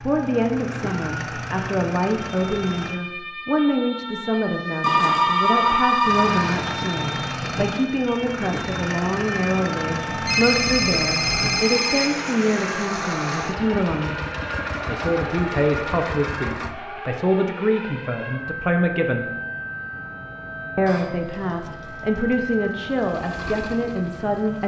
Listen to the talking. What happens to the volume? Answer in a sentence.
The volume of the talking stays about the same.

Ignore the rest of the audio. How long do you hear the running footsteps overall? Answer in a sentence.
The running footsteps can't be heard in this clip.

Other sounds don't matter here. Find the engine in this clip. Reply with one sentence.
You can hear the engine from 0.0 to 3.0 s, from 6.0 to 16.8 s and from 21.2 to 24.6 s.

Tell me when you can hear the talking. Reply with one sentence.
The talking can be heard from 0.0 to 14.2 s, from 14.8 to 19.2 s and from 20.8 to 24.6 s.